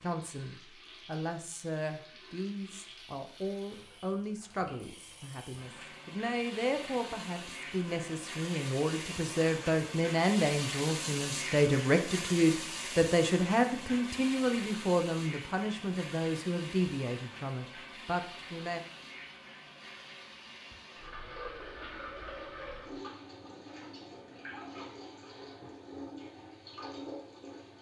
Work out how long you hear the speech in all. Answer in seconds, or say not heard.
19 s.